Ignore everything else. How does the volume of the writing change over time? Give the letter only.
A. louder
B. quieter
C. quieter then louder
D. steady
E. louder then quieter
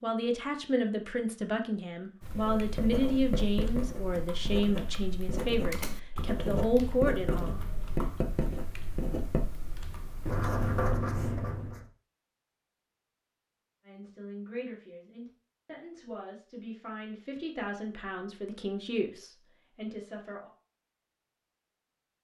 A.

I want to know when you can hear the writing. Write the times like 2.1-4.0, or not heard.
2.3-11.8.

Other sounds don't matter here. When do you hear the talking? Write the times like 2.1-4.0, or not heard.
0.0-7.6, 13.8-20.5.